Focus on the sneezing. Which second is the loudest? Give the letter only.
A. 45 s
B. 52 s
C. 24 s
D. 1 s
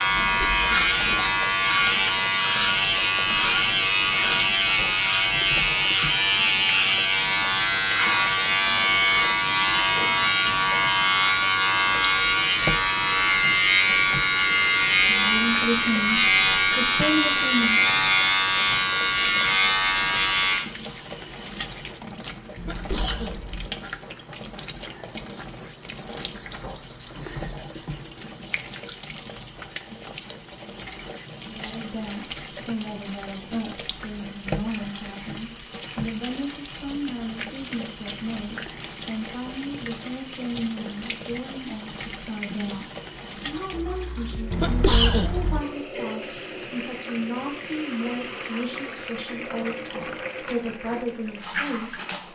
A.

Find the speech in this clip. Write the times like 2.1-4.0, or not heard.
15.1-17.8, 31.4-52.3.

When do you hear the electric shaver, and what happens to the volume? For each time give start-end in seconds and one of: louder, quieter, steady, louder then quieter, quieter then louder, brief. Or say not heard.
0.0-20.6 steady.